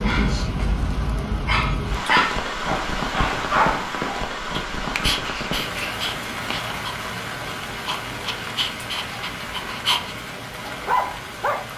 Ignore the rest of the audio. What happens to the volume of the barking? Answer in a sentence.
The loudness of the barking goes down, then up.